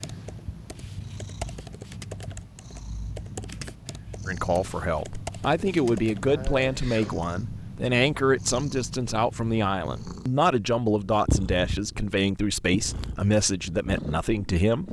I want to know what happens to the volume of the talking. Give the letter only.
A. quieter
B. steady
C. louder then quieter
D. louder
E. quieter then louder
B.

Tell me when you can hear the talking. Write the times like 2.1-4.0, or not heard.
4.2-14.8.